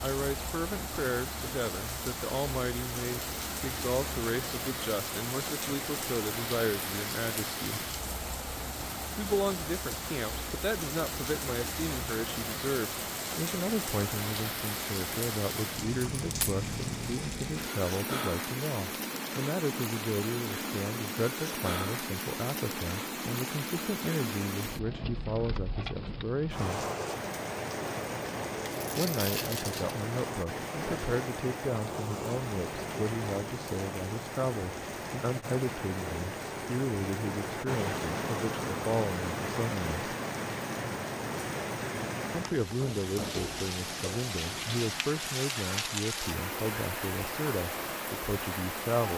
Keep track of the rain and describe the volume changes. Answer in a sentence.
The loudness of the rain stays about the same.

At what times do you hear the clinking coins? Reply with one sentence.
You can hear the clinking coins from 16.1 to 16.6 s and from 28.6 to 29.9 s.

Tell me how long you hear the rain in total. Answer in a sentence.
The rain can be heard for 49 seconds in total.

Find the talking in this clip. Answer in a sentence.
You can hear the talking from 0.0 to 7.8 s, from 9.2 to 26.9 s, from 28.9 to 40.0 s and from 42.3 to 49.1 s.